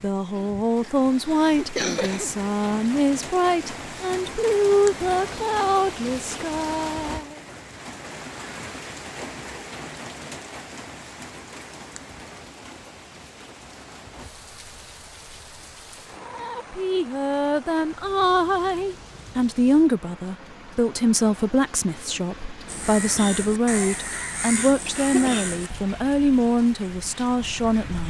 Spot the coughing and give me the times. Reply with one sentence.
You can hear the coughing from 0.3 to 2.3 s and from 24.9 to 25.5 s.